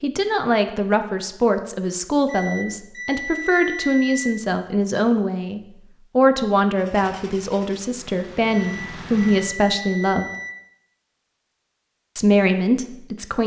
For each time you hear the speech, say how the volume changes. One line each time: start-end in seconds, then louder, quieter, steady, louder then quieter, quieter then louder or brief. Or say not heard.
0.0-10.3 steady
12.2-13.4 brief.